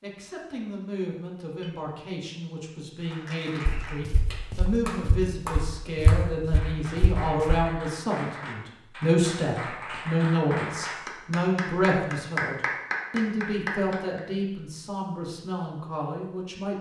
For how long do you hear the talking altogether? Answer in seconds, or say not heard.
17 s.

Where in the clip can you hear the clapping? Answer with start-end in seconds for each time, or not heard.
3.0-14.2.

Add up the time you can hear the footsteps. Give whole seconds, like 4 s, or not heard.
4 s.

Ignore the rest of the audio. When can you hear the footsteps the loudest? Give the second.
6 s.